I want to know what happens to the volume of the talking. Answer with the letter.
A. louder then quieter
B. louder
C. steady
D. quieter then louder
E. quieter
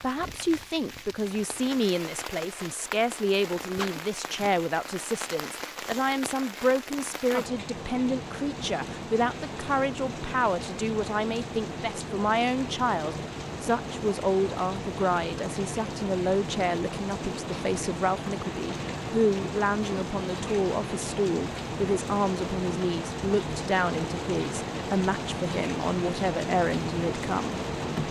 C.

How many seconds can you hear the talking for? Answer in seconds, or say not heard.
28 s.